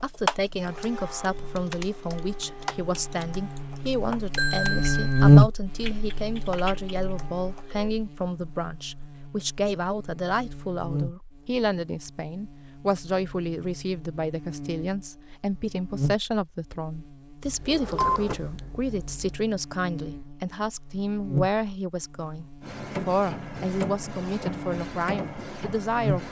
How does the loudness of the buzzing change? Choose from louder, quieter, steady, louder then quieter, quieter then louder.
quieter then louder.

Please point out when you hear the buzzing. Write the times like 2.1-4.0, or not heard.
0.0-26.2.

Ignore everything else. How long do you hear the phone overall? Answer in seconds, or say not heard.
2 s.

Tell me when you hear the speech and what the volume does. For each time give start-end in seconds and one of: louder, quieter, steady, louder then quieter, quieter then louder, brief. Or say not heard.
0.0-26.2 steady.